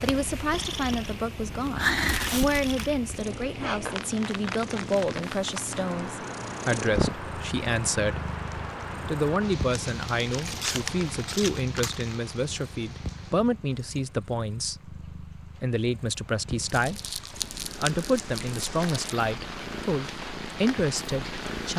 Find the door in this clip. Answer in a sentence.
The door can't be heard in this clip.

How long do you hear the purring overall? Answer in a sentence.
You can hear the purring for 22 seconds altogether.